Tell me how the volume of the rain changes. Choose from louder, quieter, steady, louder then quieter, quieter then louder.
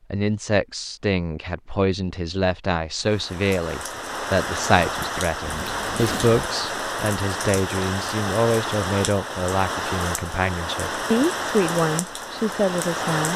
steady.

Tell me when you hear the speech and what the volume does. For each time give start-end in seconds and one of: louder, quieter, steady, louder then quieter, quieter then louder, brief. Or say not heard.
0.1-13.3 steady.